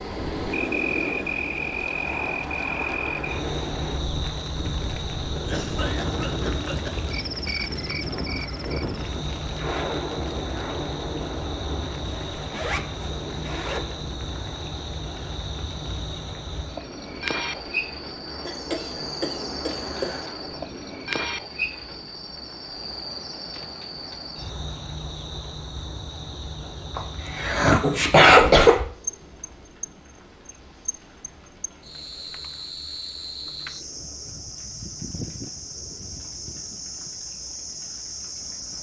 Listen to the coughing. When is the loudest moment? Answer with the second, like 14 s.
28 s.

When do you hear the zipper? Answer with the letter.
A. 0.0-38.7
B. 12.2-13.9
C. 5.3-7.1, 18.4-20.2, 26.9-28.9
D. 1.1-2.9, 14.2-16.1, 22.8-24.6
B.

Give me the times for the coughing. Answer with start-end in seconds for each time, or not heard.
5.3-7.1, 18.4-20.2, 26.9-28.9.